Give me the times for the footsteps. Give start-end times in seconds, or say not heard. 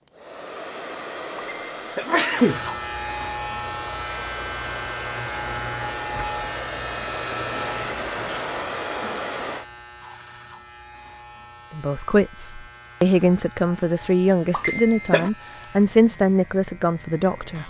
not heard.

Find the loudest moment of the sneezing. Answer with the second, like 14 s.
2 s.